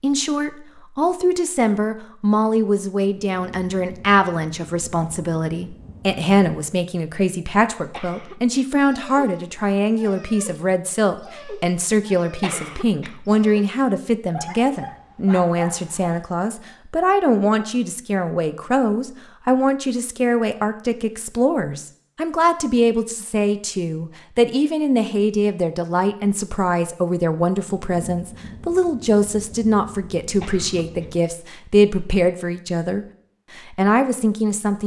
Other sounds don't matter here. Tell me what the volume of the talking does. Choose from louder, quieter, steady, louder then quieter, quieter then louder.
steady.